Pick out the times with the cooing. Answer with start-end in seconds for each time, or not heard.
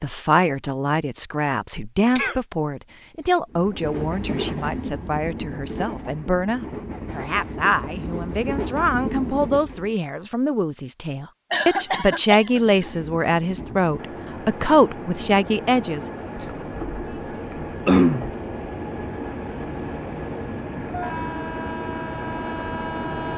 not heard.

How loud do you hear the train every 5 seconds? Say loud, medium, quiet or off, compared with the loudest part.
loud, loud, medium, loud, loud.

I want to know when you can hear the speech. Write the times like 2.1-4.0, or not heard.
0.0-16.1.